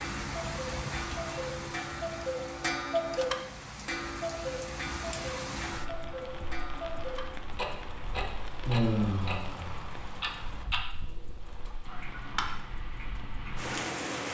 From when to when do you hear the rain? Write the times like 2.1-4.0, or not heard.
0.0-14.2.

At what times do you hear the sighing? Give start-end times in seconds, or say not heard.
8.7-9.8.